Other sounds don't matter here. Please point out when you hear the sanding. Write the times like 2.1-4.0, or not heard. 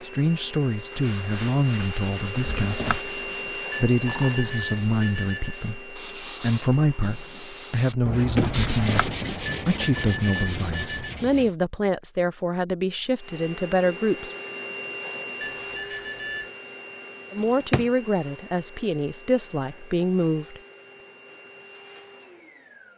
0.9-11.6.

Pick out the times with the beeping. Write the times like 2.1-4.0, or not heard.
3.7-5.6, 9.4-11.2, 15.4-16.5.